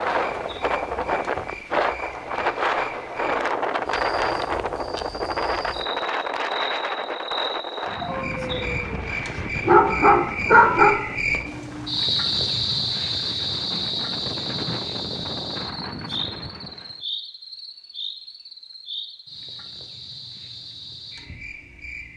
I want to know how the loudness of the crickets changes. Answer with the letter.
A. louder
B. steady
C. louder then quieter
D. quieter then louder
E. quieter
C.